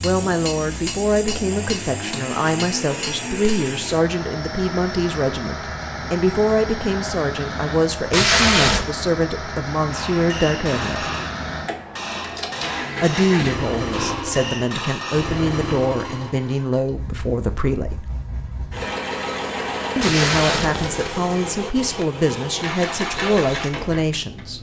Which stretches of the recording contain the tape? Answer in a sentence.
The tape can be heard from 8.1 to 8.8 s and from 20.0 to 21.0 s.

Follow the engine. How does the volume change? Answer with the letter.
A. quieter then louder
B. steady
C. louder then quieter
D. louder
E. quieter
B.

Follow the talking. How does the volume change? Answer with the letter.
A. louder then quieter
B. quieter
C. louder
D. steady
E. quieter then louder
D.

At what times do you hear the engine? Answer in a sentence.
The engine can be heard from 0.0 to 24.5 s.